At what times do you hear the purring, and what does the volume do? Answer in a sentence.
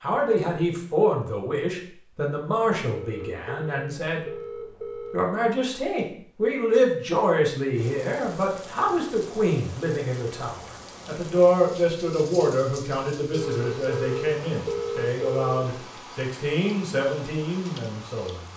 The purring can't be heard in this clip.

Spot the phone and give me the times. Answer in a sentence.
The phone can be heard from 2.9 to 5.3 s and from 13.3 to 15.6 s.